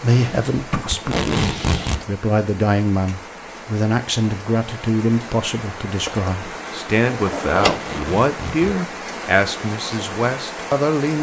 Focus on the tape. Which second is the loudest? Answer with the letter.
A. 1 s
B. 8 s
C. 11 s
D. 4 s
A.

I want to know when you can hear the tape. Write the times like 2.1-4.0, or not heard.
0.9-2.0, 7.7-8.7.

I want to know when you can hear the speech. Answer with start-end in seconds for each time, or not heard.
0.0-11.1.